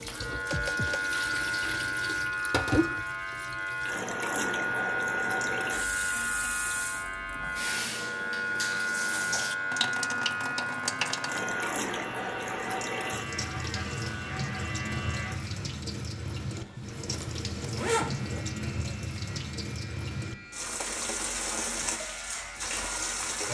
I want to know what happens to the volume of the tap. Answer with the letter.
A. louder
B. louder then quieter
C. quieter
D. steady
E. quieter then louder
D.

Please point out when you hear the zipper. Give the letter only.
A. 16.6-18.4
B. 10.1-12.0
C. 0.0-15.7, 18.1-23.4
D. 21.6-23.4
A.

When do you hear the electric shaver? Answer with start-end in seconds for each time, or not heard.
0.0-15.7, 18.1-23.4.